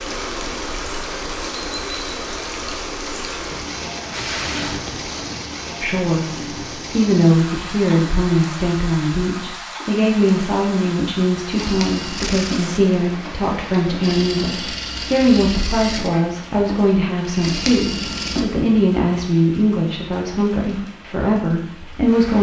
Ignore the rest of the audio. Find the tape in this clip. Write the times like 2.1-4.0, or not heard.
4.1-5.1, 12.2-12.8.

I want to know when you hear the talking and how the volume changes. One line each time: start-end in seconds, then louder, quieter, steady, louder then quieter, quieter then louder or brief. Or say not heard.
5.8-22.3 steady.